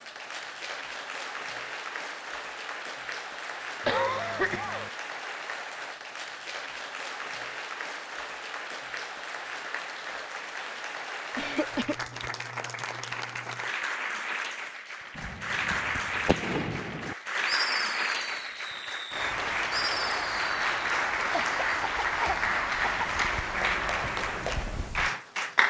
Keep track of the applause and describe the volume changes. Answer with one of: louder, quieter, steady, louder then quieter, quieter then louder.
louder.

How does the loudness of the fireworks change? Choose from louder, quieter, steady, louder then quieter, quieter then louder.
quieter then louder.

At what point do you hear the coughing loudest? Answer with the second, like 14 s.
4 s.